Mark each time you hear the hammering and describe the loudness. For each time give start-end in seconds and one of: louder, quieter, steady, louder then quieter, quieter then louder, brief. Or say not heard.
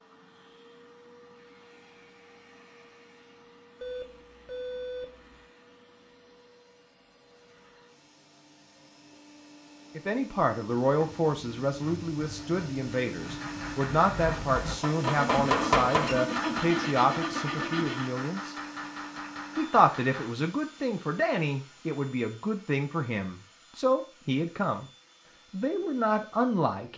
13.2-20.4 louder then quieter.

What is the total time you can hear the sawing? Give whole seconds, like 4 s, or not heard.
7 s.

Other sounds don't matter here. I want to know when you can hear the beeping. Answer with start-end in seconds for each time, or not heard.
3.8-5.4.